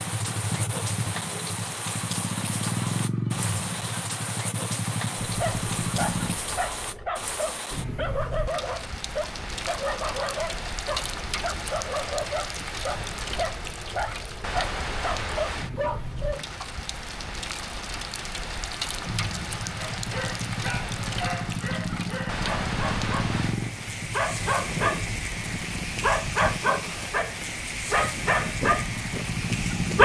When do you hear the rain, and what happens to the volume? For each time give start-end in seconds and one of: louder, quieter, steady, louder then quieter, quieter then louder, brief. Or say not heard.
0.0-30.0 steady.